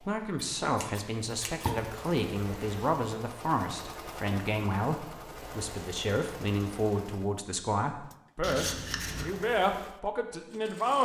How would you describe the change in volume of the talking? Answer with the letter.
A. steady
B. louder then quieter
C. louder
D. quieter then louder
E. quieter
A.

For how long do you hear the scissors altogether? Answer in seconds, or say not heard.
2 s.